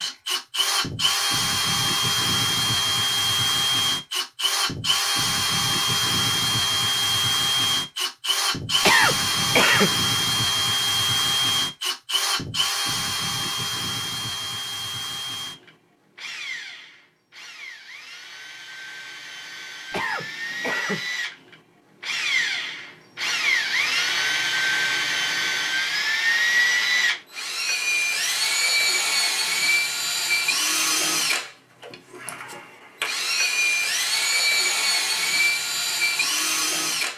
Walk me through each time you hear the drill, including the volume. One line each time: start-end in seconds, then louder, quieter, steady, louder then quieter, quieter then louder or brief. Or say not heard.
0.0-37.1 quieter then louder.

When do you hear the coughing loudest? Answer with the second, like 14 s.
9 s.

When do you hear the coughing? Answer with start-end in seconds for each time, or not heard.
8.8-9.9, 19.9-21.0.